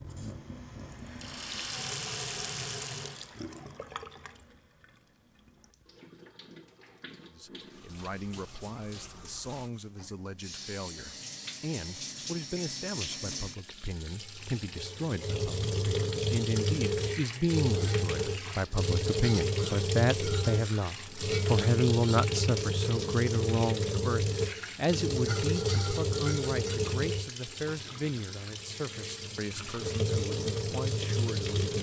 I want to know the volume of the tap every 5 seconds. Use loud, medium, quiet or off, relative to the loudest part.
medium, quiet, medium, loud, loud, loud, loud.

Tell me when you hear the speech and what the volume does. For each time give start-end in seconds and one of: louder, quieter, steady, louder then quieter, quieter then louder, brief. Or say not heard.
7.3-31.7 louder then quieter.